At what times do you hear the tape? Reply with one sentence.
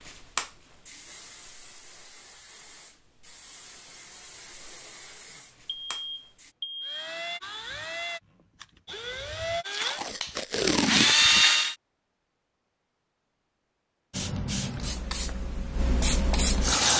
You can hear the tape from 9.7 to 11.4 s.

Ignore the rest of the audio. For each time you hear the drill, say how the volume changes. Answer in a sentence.
The drill can be heard from 6.8 to 11.8 s, getting louder.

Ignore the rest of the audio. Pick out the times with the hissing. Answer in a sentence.
The hissing can be heard from 0.0 to 6.5 s and from 14.1 to 16.9 s.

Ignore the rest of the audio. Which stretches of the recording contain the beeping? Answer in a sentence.
The beeping can be heard from 5.7 to 7.1 s.